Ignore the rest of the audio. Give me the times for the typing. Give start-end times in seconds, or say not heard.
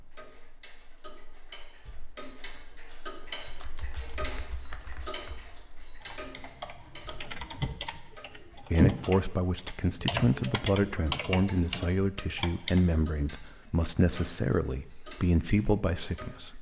3.5-12.8.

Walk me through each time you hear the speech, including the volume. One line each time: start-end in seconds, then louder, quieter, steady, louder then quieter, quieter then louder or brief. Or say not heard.
8.7-16.5 steady.